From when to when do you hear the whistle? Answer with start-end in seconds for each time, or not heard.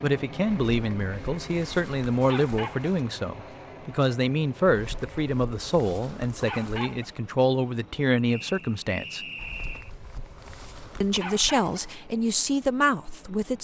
8.2-9.9.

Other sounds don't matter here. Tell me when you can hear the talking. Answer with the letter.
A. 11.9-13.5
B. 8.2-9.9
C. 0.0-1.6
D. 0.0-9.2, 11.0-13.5
D.